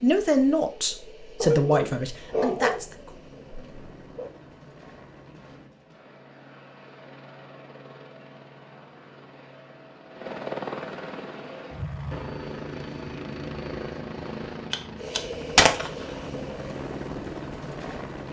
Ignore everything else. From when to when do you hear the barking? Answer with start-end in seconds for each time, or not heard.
1.4-4.3.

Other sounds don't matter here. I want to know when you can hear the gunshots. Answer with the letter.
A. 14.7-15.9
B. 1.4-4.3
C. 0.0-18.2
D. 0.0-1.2
A.